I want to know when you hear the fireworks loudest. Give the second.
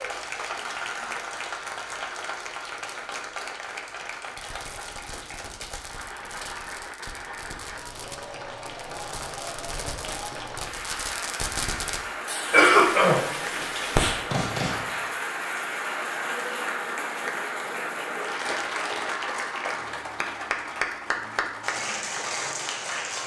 14 s.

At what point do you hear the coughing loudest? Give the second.
13 s.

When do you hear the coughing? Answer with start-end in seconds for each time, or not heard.
12.5-14.0.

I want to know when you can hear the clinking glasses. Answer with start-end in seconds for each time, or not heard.
not heard.